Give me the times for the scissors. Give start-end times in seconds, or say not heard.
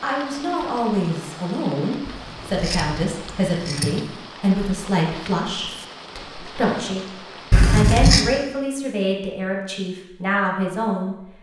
2.0-4.0, 7.5-8.2.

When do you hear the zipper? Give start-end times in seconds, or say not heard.
not heard.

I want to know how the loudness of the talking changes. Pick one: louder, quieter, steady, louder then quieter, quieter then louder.
steady.